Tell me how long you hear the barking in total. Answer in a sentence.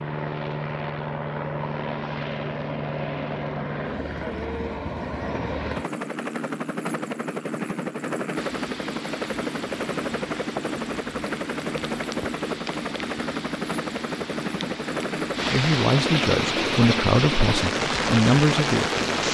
You can't hear the barking here.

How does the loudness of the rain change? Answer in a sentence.
The loudness of the rain goes up.